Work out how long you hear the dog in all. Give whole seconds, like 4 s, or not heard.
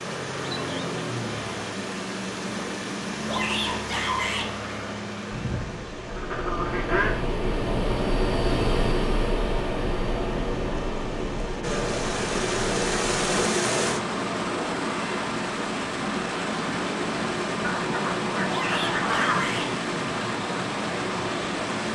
not heard.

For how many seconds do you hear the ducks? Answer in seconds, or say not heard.
4 s.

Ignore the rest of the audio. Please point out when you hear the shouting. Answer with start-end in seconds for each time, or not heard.
3.2-4.5, 18.4-19.7.